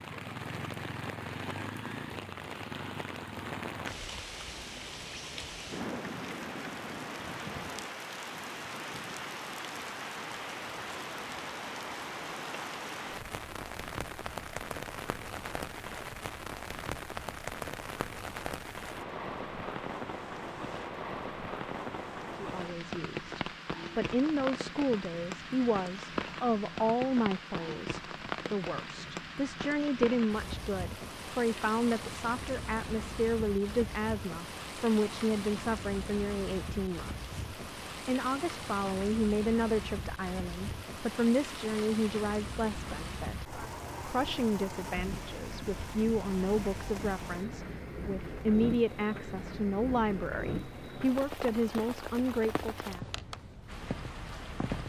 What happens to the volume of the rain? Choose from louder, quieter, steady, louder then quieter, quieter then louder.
steady.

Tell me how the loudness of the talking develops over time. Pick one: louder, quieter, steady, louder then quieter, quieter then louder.
steady.